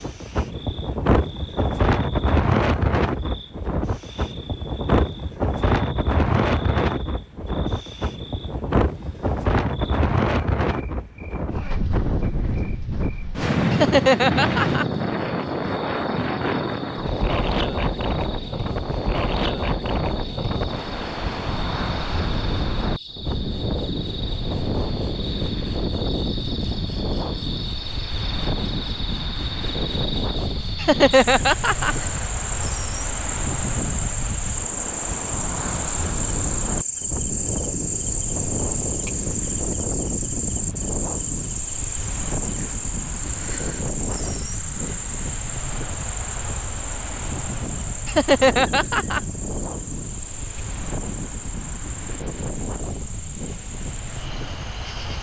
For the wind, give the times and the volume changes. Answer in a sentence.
The wind can be heard from 0.0 to 55.1 s, getting quieter.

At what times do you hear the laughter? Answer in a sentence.
The laughter can be heard from 13.7 to 14.8 s, from 30.8 to 31.9 s and from 48.0 to 49.2 s.